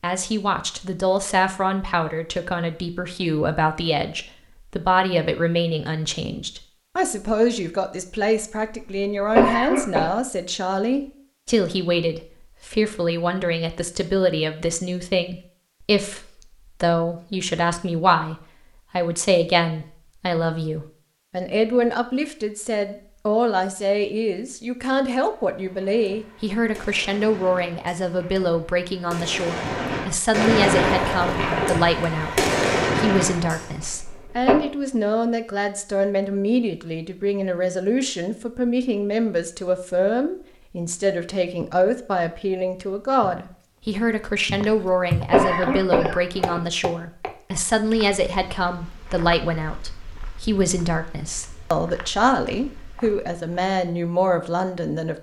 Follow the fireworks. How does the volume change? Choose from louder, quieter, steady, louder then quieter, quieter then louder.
louder.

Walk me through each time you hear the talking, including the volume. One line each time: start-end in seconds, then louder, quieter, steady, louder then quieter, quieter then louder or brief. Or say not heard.
0.0-55.1 steady.